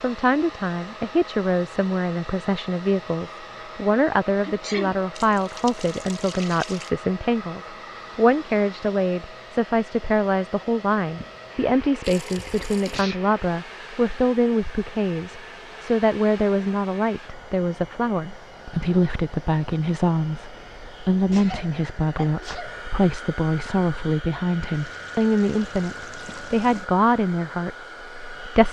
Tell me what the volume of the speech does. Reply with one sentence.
The loudness of the speech stays about the same.